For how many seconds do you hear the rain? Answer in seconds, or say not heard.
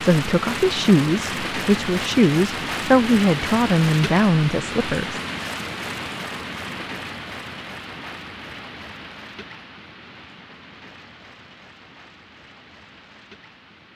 14 s.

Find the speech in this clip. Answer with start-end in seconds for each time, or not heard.
0.0-5.2.